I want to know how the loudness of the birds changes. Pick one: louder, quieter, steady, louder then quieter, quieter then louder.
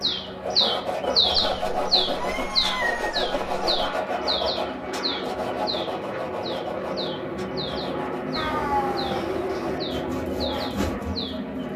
quieter.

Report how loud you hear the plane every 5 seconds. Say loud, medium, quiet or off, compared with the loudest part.
medium, loud, loud.